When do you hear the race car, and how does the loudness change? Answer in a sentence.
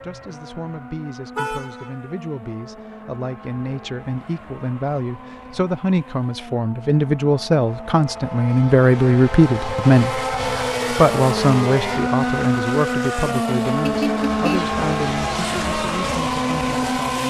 The race car can be heard from 0.0 to 17.2 s, getting louder.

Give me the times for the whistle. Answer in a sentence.
The whistle can't be heard in this clip.